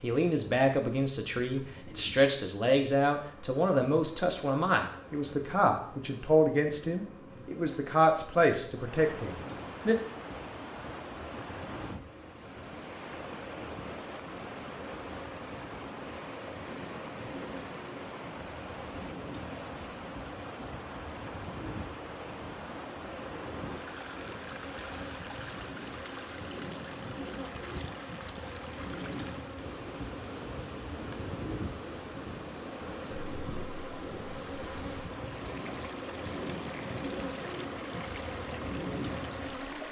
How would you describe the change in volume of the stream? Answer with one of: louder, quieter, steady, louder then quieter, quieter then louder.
steady.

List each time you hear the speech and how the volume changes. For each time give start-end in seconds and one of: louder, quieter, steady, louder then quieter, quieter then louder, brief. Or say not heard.
0.0-9.9 steady.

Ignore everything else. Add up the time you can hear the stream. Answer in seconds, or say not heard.
31 s.